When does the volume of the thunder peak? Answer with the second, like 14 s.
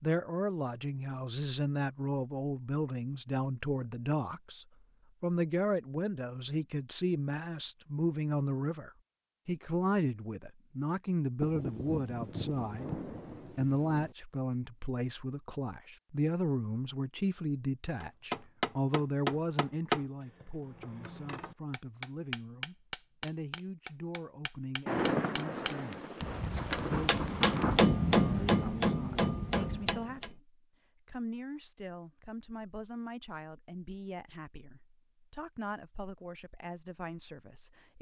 25 s.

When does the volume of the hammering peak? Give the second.
28 s.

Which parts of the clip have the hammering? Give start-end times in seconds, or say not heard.
18.0-30.3.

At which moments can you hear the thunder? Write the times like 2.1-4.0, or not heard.
11.4-14.2, 24.9-27.8.